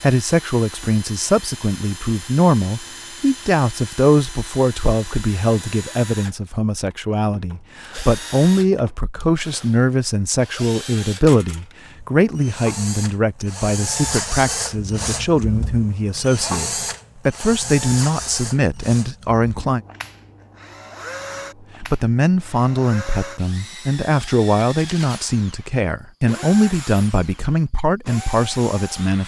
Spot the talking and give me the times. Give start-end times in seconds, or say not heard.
0.0-19.8, 21.8-29.2.